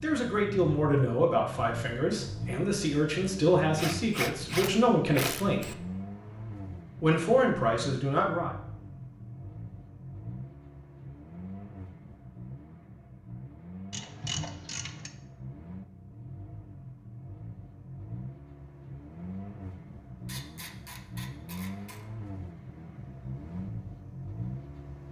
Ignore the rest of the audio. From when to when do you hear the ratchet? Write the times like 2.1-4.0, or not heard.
3.8-5.8, 13.9-15.1, 20.2-22.1.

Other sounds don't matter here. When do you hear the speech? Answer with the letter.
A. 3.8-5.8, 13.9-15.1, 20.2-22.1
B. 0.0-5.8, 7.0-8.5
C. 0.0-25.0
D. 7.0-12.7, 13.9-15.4
B.